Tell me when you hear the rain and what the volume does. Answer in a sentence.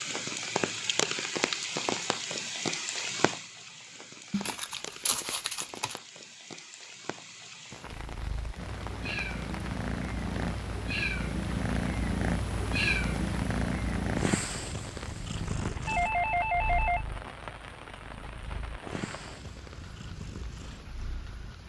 You can hear the rain from 0.0 to 21.6 s, getting quieter.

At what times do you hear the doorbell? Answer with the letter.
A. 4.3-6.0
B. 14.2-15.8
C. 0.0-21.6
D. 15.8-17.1
D.